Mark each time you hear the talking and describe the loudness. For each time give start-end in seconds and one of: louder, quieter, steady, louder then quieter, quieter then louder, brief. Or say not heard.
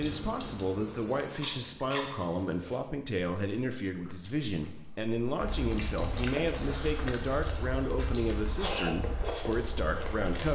0.0-10.5 steady.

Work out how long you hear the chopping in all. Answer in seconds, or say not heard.
not heard.